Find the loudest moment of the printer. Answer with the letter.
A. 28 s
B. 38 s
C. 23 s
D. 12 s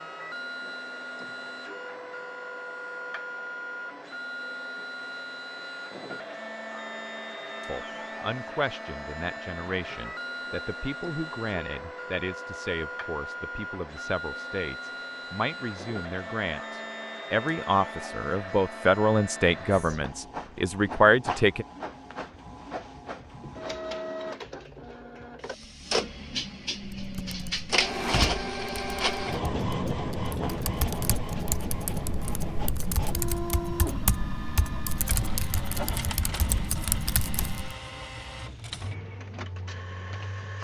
A.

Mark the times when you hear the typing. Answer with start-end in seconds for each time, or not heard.
26.9-37.8.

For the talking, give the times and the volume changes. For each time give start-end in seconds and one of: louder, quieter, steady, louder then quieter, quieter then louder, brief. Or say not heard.
7.7-21.6 louder.